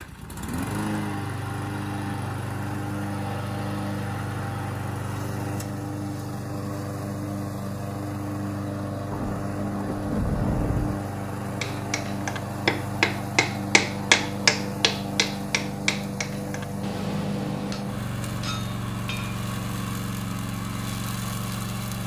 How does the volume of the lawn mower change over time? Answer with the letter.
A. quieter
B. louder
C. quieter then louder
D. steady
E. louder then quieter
D.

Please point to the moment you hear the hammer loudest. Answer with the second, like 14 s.
14 s.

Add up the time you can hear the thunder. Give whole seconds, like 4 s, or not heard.
2 s.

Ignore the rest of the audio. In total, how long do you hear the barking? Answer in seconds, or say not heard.
not heard.